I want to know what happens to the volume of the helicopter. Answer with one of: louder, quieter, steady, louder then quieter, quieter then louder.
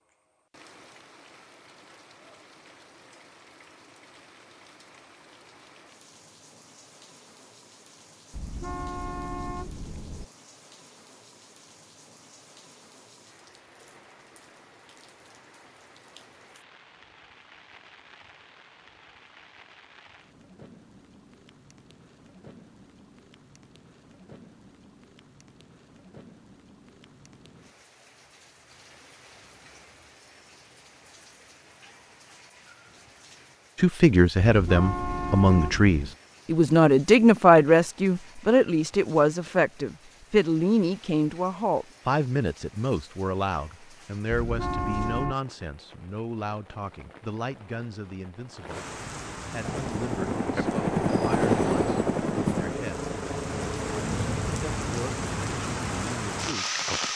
louder then quieter.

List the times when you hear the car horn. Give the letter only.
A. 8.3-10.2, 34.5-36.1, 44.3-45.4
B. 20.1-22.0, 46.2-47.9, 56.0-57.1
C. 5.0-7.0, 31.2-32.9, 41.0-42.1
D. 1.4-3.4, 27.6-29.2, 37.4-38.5
A.